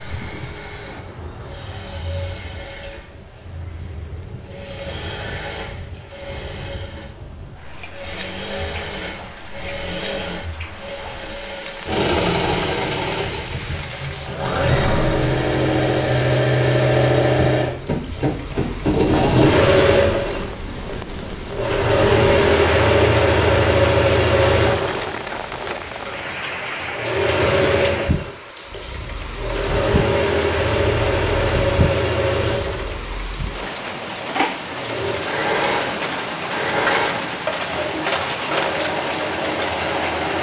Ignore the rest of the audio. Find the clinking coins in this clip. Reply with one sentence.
You can hear the clinking coins from 36.9 to 38.7 s.